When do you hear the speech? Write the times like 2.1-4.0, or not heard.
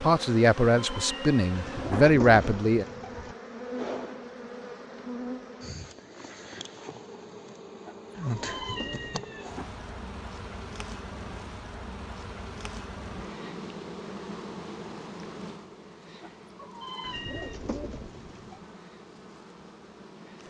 0.0-2.9.